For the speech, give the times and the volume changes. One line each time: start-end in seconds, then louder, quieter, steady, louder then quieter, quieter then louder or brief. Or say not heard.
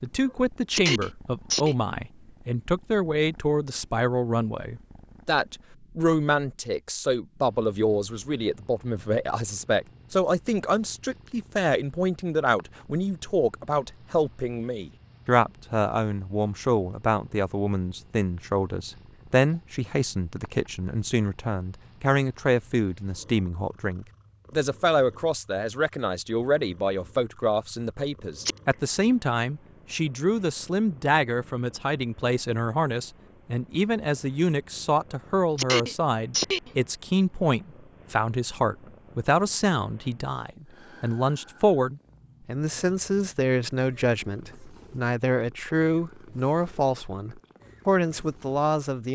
0.0-49.1 steady.